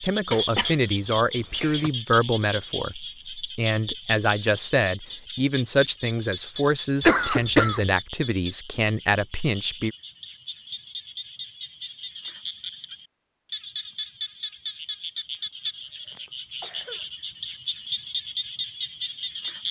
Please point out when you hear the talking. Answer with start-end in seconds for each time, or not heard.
0.0-9.9.